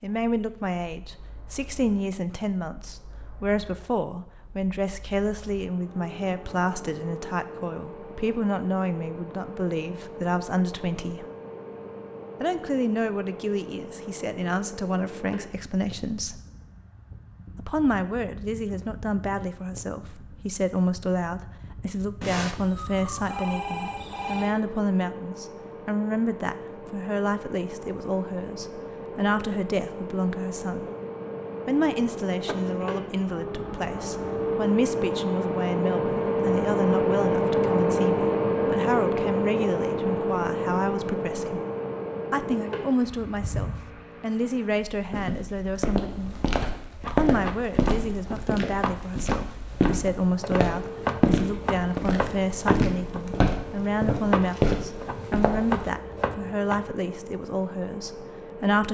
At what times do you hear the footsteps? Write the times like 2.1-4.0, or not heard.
45.1-55.9.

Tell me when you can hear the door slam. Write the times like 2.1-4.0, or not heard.
46.5-47.0.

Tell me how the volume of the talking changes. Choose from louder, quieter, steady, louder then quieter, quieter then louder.
steady.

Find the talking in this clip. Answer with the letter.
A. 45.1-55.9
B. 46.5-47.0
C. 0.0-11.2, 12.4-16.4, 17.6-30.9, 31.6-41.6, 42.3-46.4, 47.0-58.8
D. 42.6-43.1
C.